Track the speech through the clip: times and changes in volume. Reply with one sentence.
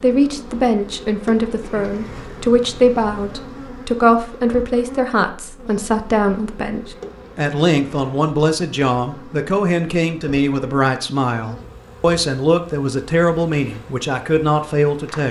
You can hear the speech from 0.0 to 15.2 s, at a steady volume.